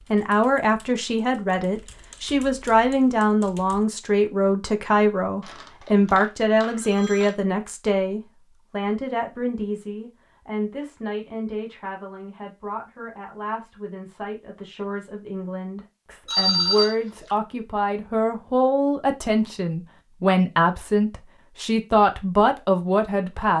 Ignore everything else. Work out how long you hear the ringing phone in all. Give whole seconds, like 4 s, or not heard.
3 s.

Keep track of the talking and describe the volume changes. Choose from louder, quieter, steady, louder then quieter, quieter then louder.
quieter then louder.